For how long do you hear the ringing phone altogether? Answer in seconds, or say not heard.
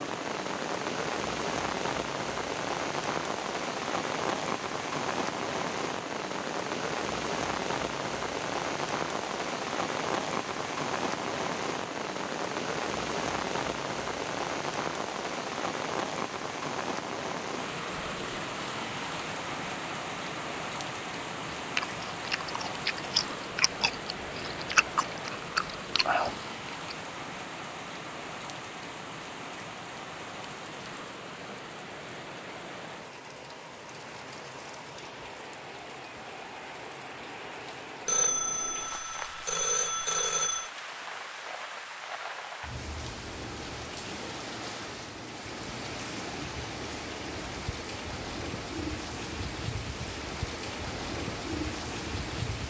3 s.